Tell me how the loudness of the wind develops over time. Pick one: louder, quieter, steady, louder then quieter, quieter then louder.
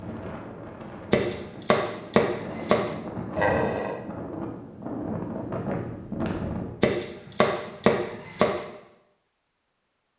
louder.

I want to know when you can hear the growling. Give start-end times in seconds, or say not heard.
3.4-4.0.